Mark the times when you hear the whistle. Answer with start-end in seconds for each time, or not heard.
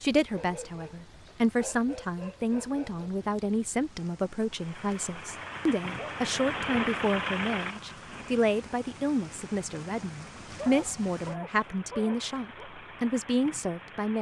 not heard.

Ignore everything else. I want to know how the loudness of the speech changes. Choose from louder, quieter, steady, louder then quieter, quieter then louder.
steady.